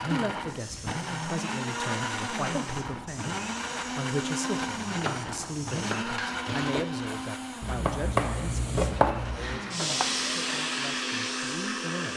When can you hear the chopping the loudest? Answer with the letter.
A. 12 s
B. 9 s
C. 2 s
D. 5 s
B.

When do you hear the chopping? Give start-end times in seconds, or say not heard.
4.8-10.2.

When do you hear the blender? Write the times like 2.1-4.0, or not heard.
0.0-12.1.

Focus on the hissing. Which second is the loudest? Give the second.
10 s.